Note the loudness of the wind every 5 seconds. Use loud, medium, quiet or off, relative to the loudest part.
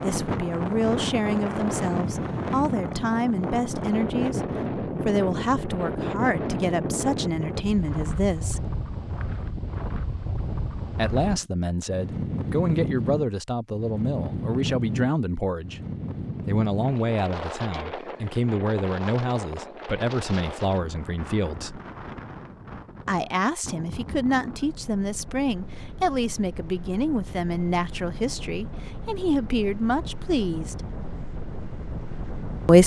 loud, loud, loud, medium, medium, quiet, medium.